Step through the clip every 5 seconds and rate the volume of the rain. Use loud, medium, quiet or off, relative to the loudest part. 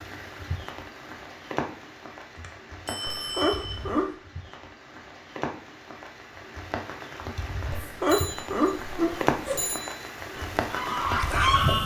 medium, loud, loud.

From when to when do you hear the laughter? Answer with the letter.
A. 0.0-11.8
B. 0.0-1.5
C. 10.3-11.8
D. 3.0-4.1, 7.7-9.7
D.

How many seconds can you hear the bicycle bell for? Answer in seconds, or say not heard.
3 s.